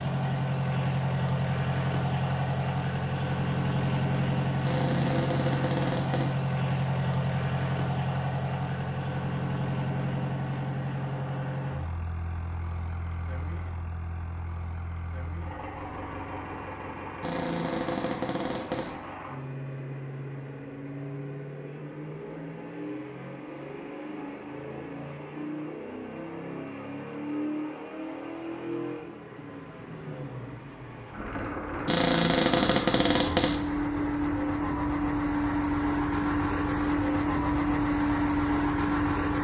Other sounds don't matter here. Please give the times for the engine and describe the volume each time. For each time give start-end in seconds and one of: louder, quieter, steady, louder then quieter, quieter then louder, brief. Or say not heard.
0.0-39.3 quieter then louder.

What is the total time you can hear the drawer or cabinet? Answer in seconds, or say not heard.
5 s.